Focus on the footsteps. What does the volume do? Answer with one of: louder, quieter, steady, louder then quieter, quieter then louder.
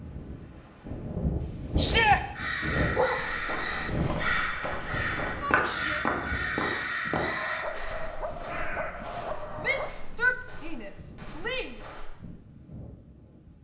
louder then quieter.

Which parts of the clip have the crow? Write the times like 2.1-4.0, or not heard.
2.4-9.1.